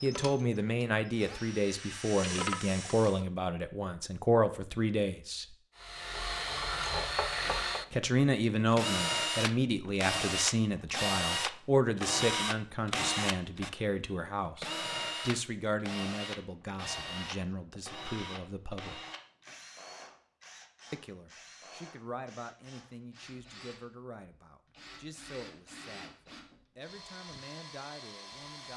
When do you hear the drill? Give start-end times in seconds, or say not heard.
0.0-3.2, 5.8-28.7.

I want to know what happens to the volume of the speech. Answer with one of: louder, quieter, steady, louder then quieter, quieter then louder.
quieter.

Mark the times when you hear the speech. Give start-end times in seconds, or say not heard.
0.0-5.5, 7.9-19.0, 20.9-28.7.